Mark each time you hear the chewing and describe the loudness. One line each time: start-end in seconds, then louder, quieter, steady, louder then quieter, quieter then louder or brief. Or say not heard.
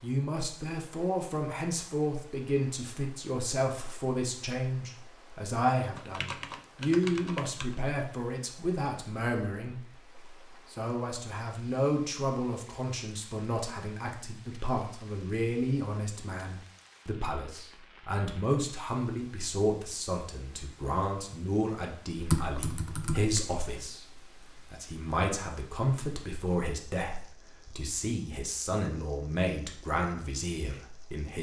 not heard.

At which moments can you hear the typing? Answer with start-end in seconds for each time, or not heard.
6.0-7.8, 22.1-23.6.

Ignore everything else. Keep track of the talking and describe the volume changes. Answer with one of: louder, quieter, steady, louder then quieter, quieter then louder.
steady.